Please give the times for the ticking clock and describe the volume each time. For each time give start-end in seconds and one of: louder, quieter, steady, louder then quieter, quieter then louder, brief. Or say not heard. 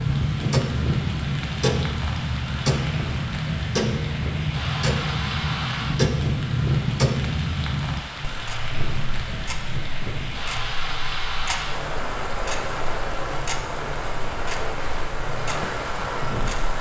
0.0-16.7 quieter.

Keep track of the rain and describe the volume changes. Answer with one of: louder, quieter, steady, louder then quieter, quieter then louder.
steady.